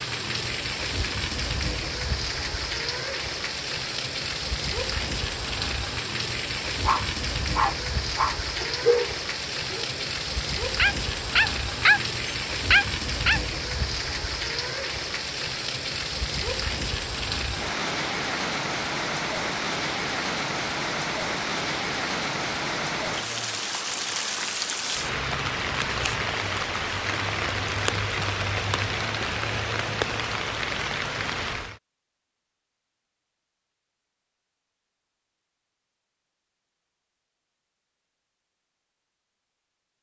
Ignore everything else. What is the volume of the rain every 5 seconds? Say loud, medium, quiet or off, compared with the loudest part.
loud, loud, loud, loud, loud, loud, loud, off.